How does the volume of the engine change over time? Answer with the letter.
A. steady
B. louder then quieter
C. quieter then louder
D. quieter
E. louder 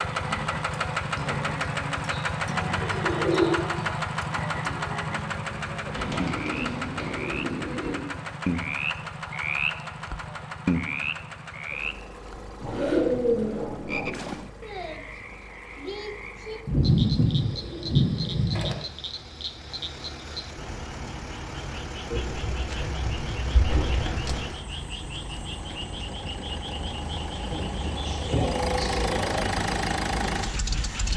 C.